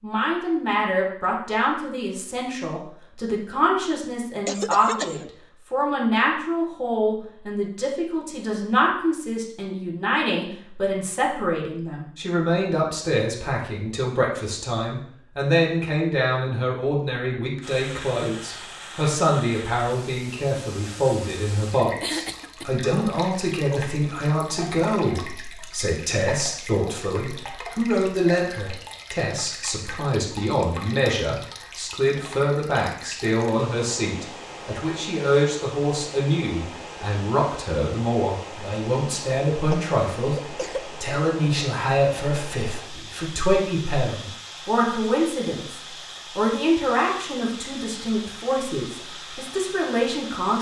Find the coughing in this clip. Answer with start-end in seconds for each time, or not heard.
4.5-5.3, 22.0-22.9, 39.7-40.9.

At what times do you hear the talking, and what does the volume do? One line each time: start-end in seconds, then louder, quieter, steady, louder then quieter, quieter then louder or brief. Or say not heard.
0.0-50.5 steady.